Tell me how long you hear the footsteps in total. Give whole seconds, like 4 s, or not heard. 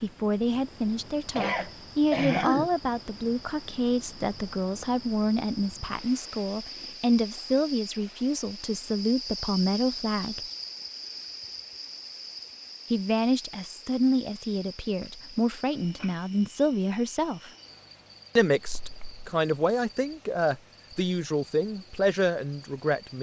not heard.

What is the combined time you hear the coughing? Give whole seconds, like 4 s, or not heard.
2 s.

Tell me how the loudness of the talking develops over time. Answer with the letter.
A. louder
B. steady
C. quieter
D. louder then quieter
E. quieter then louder
B.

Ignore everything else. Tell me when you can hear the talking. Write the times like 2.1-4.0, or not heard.
0.0-10.4, 12.9-17.5, 18.4-23.1.